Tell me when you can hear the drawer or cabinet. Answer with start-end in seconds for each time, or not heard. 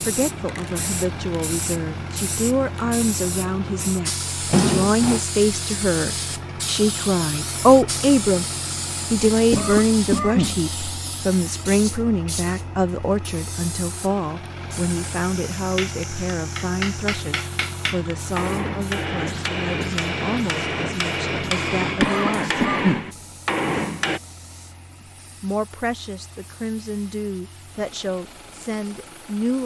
4.5-5.2.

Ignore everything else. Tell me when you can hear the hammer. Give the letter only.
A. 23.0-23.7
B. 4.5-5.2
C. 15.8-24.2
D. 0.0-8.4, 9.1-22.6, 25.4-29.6
C.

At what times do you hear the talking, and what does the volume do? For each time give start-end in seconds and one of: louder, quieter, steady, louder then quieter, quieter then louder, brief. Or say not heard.
0.0-8.4 louder
9.1-22.6 quieter
25.4-29.6 steady.